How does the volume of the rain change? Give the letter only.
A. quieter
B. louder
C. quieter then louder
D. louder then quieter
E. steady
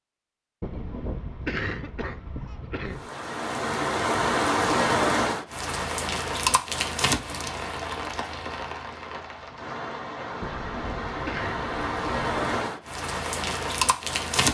C.